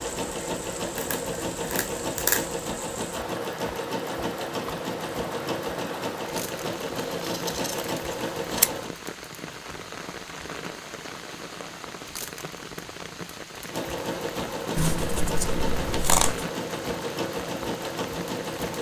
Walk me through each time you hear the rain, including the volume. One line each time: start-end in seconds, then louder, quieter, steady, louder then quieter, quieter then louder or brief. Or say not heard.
0.0-18.7 steady.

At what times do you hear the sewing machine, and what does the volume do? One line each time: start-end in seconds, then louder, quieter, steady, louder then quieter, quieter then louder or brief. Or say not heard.
0.0-8.9 steady
13.7-18.7 steady.